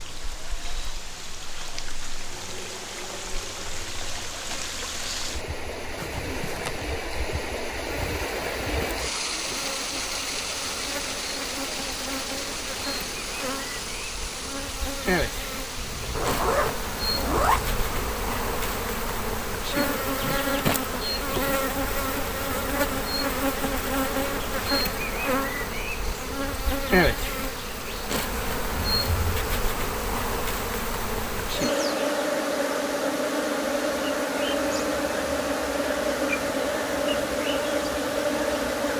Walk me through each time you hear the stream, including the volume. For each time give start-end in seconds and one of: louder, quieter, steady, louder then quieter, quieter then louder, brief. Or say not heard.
0.0-38.9 quieter.